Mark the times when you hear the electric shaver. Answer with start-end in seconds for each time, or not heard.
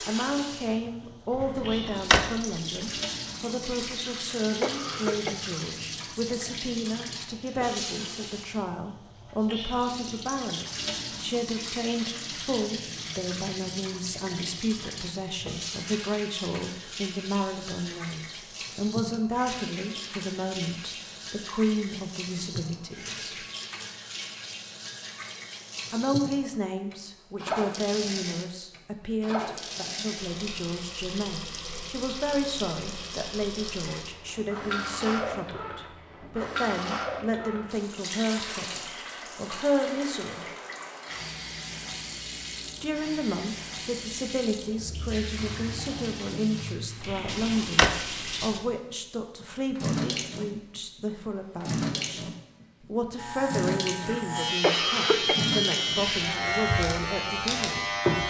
53.1-58.2.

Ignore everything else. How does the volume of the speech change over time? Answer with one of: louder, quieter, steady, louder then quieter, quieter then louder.
steady.